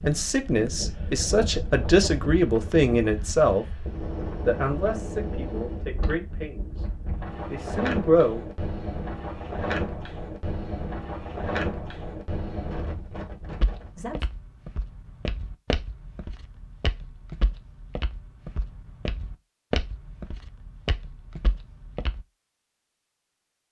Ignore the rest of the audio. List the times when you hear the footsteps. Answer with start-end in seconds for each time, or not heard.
13.5-22.2.